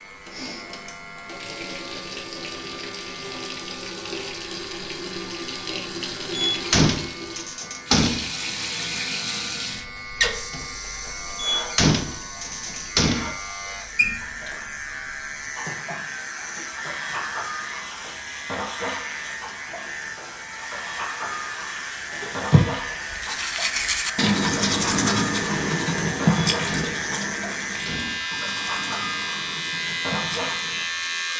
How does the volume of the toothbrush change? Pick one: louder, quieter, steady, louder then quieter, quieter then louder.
quieter.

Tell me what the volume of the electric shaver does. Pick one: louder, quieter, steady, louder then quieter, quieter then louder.
louder.